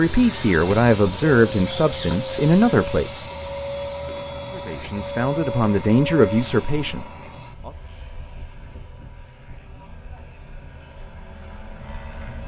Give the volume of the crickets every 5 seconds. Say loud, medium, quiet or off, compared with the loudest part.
loud, quiet, quiet.